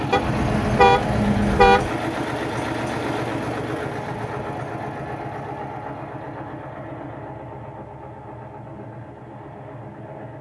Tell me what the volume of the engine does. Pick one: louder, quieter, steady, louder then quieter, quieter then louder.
quieter.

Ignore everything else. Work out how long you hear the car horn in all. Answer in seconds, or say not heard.
2 s.